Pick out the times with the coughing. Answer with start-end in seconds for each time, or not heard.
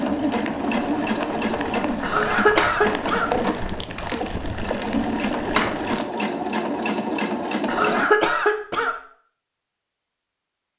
2.0-3.3, 7.7-8.9.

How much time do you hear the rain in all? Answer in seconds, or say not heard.
6 s.